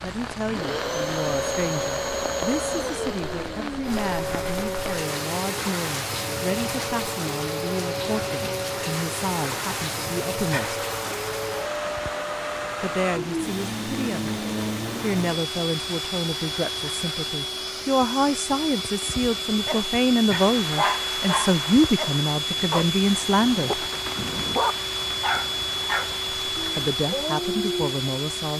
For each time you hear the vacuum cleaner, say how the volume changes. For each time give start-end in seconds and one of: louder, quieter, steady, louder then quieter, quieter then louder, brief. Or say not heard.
0.3-28.5 steady.